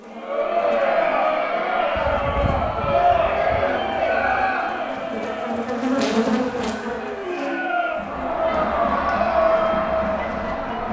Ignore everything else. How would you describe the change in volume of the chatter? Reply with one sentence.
The volume of the chatter goes down, then up.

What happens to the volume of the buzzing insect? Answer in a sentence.
The loudness of the buzzing insect goes up, then down.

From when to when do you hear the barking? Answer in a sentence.
You can hear the barking from 3.0 to 4.5 s.